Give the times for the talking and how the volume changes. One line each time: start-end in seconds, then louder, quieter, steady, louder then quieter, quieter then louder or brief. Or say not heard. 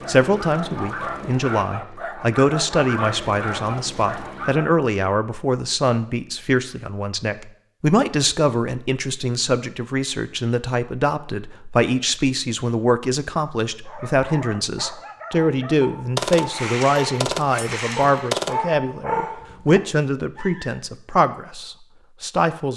0.1-22.7 steady.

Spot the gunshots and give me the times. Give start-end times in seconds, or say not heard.
16.1-18.6.